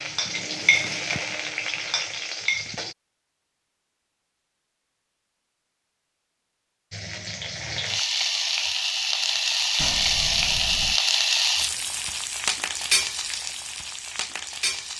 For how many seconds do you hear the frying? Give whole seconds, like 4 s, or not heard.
11 s.